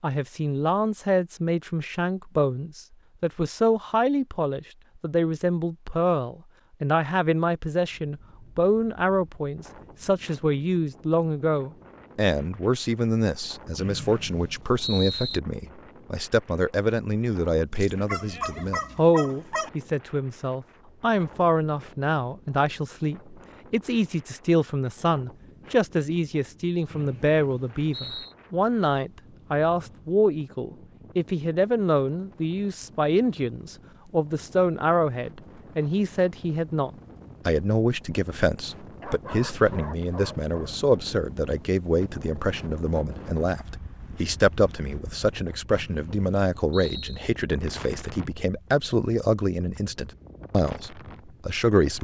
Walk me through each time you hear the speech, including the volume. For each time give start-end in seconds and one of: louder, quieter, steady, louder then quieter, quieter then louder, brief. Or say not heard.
0.0-51.9 steady.